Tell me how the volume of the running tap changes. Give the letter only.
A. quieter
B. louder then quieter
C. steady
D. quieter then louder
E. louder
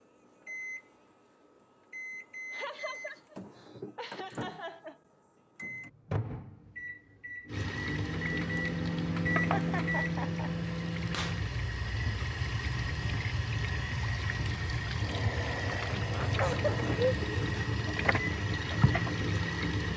E.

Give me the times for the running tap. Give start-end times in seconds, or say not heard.
7.5-19.9.